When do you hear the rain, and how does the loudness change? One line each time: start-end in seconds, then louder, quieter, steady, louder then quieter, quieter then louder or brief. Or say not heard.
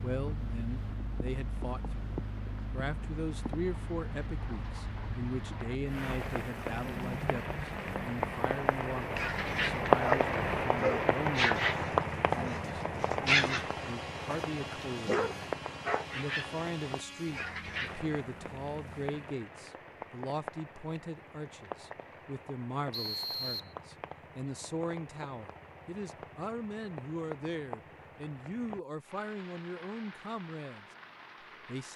0.1-31.9 louder then quieter.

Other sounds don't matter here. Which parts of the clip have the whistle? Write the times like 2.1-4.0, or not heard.
22.9-23.8.